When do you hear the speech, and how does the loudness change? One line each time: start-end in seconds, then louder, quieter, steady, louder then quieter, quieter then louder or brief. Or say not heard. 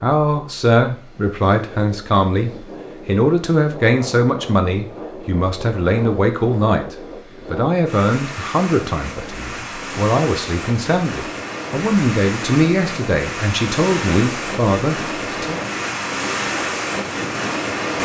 0.0-15.7 steady.